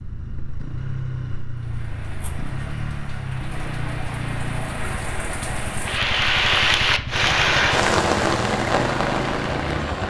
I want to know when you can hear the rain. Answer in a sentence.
The rain can be heard from 1.6 to 10.0 s.